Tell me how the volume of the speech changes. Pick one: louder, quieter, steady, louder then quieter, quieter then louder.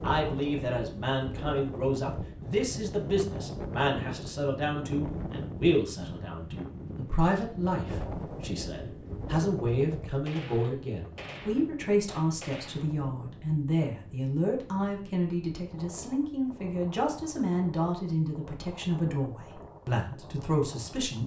steady.